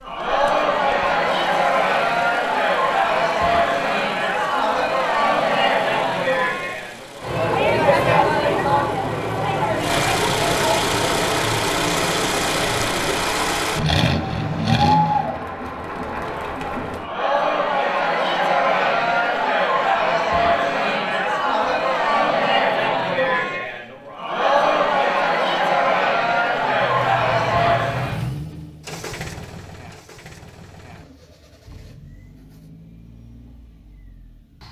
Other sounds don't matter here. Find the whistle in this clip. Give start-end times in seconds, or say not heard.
not heard.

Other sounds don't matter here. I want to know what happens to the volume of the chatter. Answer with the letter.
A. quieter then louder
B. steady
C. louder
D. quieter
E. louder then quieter
A.